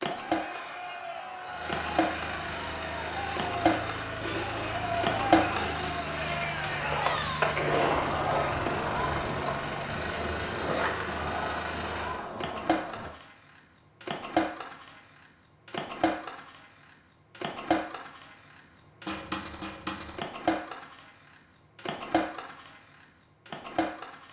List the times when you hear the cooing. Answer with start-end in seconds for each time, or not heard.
not heard.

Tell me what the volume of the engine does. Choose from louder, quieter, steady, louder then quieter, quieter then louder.
steady.